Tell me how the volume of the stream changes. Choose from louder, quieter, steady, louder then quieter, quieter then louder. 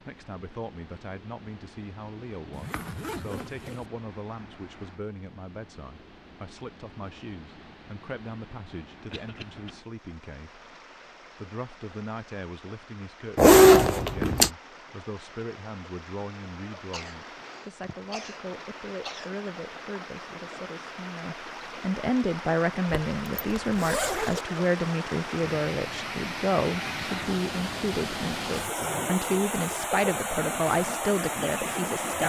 louder.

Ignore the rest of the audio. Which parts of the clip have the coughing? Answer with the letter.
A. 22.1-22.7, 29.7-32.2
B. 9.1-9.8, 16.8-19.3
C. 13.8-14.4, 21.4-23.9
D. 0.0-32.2
B.